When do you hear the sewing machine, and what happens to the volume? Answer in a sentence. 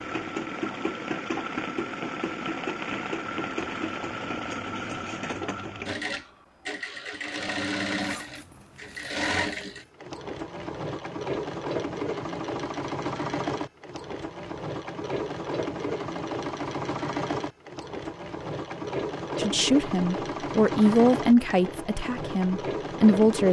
The sewing machine can be heard from 0.0 to 23.4 s, at a steady volume.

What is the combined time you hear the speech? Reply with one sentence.
The speech can be heard for 4 seconds in total.